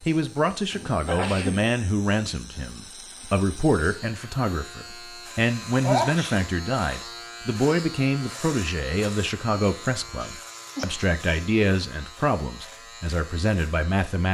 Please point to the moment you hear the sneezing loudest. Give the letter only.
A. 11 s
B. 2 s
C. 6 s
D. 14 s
C.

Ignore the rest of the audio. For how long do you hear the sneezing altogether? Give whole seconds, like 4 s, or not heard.
2 s.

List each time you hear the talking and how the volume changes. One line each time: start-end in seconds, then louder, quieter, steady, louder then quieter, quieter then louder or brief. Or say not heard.
0.0-14.2 steady.